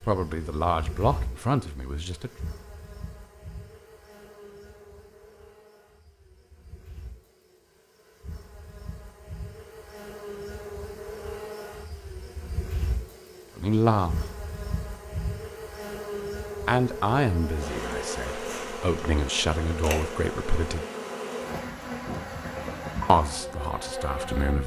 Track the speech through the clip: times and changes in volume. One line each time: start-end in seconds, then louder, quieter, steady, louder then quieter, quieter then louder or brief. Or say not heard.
0.1-2.3 brief
13.6-14.2 brief
16.6-20.9 quieter then louder
23.1-24.6 brief.